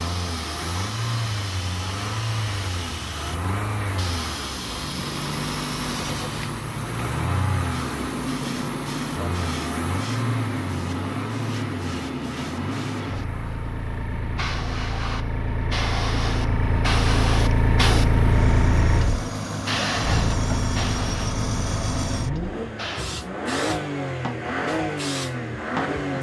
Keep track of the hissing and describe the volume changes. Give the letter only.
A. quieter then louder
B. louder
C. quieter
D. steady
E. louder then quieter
E.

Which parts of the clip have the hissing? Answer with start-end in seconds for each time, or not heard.
0.0-26.1.